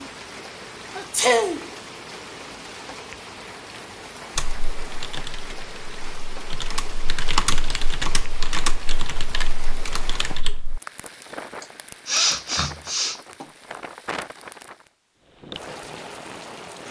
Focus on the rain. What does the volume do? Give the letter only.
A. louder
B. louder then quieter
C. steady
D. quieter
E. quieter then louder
C.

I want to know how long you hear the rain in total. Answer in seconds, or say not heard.
17 s.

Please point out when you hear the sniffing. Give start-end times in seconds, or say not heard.
0.9-1.7, 11.6-13.4.